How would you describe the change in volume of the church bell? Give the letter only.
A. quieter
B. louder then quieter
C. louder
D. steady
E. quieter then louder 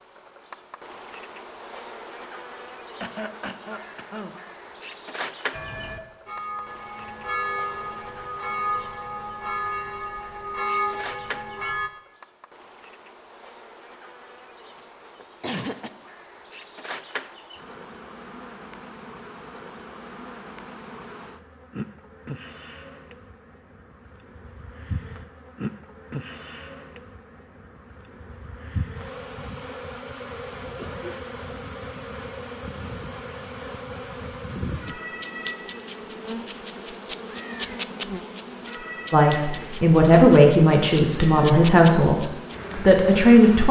C.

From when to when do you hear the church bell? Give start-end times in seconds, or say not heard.
5.5-11.9.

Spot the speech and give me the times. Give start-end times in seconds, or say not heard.
39.1-43.6.